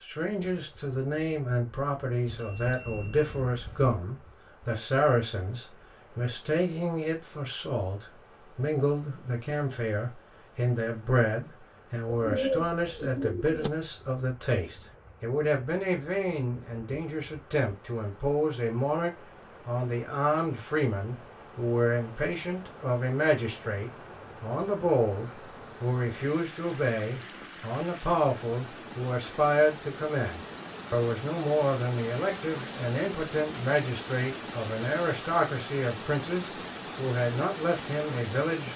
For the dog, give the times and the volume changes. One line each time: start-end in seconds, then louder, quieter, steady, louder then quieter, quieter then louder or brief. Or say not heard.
not heard.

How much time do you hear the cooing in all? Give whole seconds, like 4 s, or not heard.
2 s.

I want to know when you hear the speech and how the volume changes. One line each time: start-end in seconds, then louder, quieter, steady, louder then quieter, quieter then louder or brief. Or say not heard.
0.0-38.7 steady.